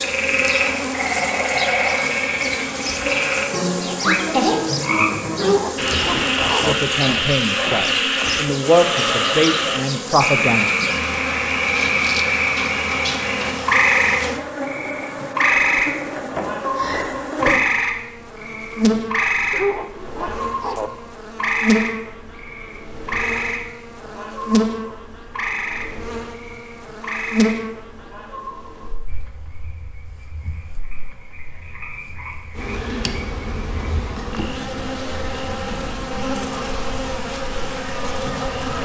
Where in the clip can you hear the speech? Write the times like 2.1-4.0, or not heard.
6.6-10.9.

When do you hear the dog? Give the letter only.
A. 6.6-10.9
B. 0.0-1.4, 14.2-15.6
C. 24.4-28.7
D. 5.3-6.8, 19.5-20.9
D.